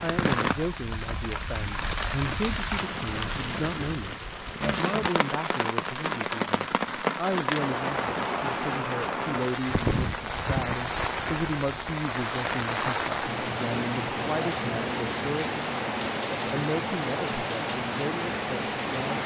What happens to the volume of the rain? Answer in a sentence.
The volume of the rain stays about the same.